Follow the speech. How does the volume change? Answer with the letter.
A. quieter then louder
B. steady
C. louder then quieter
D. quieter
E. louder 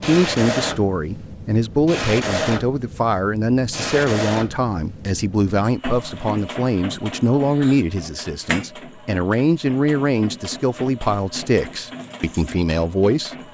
B.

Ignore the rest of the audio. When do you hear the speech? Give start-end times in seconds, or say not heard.
0.0-13.3.